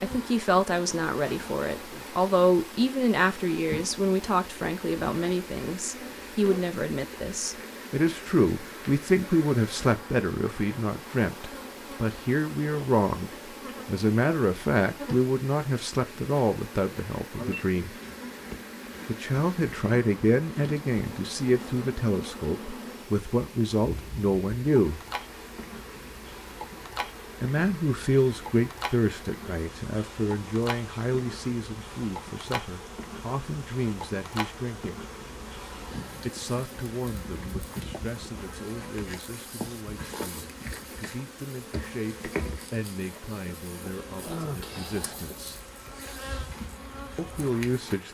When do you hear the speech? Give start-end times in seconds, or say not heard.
0.0-17.9, 19.1-25.0, 27.4-35.0, 36.2-45.6, 47.1-48.1.